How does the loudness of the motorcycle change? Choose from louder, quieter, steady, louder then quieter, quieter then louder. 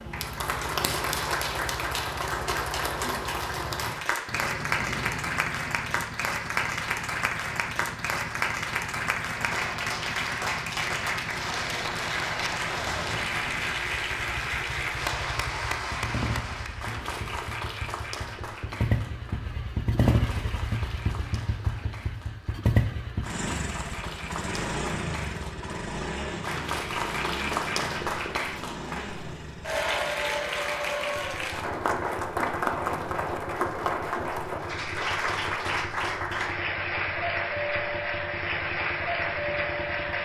louder then quieter.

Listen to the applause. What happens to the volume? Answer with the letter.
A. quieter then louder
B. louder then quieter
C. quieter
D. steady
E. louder
A.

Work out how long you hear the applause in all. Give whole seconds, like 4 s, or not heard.
40 s.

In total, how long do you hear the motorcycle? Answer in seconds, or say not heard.
40 s.